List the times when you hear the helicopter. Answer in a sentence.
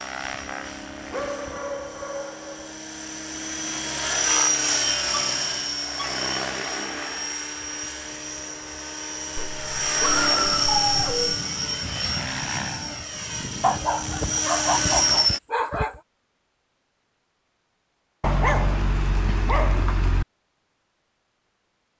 The helicopter can be heard from 0.0 to 15.4 s.